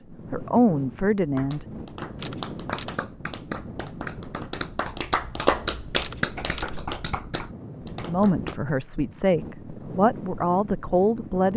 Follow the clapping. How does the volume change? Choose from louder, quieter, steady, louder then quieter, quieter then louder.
louder then quieter.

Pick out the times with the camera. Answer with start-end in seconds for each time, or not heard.
2.1-3.0, 6.0-6.8.